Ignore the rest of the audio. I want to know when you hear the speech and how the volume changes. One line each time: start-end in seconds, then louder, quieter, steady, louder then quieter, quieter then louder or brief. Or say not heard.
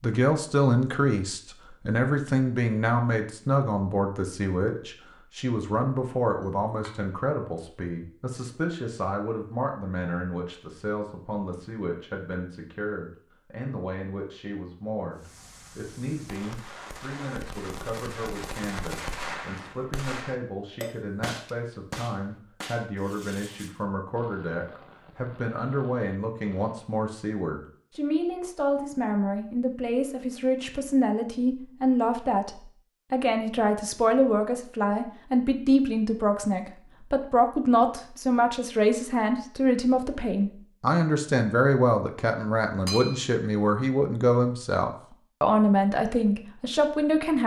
0.0-47.4 quieter then louder.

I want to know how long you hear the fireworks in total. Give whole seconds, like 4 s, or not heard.
12 s.